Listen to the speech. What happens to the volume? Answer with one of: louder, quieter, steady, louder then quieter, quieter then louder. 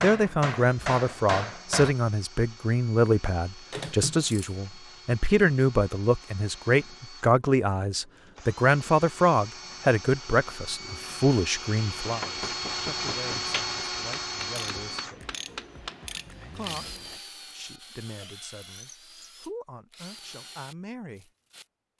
quieter.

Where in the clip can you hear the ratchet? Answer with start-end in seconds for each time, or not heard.
3.7-4.5, 14.6-17.2.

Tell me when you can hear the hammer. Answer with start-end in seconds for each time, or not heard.
0.0-1.9, 12.0-16.1.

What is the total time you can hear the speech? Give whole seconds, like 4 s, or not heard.
20 s.